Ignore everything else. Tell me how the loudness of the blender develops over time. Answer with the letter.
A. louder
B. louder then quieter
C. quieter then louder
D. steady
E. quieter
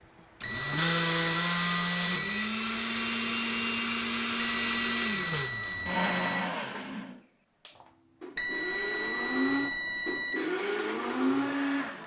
C.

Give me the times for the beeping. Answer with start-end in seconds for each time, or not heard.
0.4-2.4, 4.3-6.4, 8.3-10.3.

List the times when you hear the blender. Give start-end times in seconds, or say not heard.
0.4-12.0.